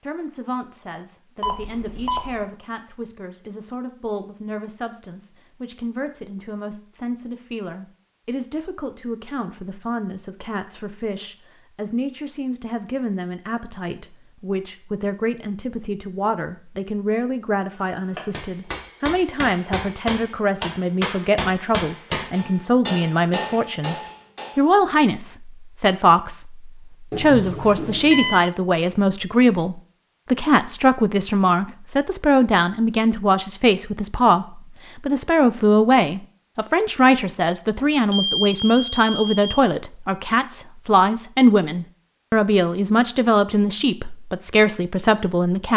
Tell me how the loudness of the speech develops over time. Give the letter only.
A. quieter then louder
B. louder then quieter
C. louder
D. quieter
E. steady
C.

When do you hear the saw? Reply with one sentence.
The saw can't be heard in this clip.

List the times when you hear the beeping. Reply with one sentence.
The beeping can be heard from 1.4 to 2.5 s, from 27.1 to 28.5 s and from 38.1 to 39.6 s.